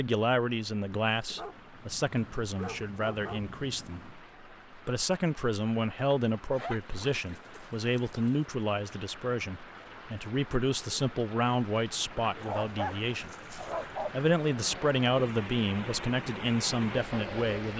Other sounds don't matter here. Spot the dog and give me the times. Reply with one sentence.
You can hear the dog from 1.2 to 4.2 s, from 6.5 to 8.4 s and from 12.4 to 14.2 s.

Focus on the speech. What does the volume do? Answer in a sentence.
The volume of the speech stays about the same.